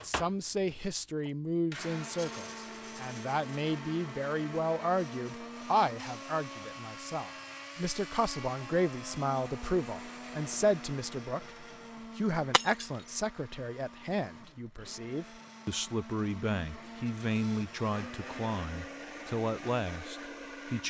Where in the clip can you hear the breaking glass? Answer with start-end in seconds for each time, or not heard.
12.5-12.9.